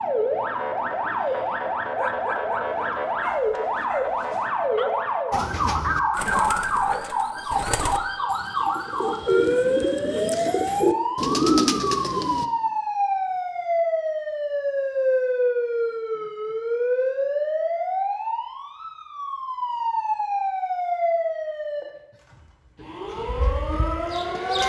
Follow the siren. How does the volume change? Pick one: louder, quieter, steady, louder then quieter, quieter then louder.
steady.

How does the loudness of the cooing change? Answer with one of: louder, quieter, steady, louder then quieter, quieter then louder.
louder.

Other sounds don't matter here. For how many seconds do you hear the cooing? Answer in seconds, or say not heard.
7 s.